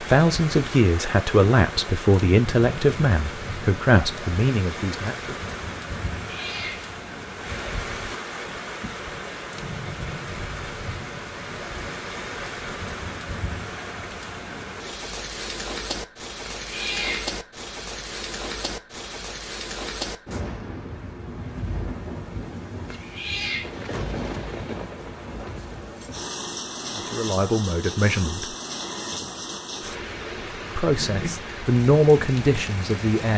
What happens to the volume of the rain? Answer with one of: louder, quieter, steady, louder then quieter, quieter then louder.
steady.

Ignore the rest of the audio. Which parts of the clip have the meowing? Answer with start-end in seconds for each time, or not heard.
6.2-7.0, 16.4-17.4, 22.9-23.8.